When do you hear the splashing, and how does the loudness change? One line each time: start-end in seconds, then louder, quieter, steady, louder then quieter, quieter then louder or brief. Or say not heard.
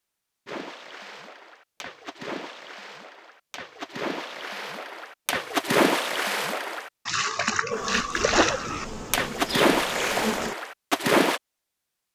0.5-11.4 louder.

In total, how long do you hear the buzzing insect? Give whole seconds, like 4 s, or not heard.
3 s.